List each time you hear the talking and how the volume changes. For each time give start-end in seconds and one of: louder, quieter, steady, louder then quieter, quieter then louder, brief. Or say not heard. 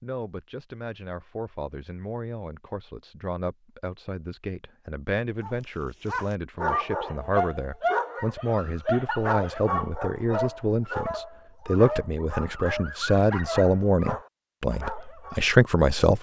0.0-16.1 louder.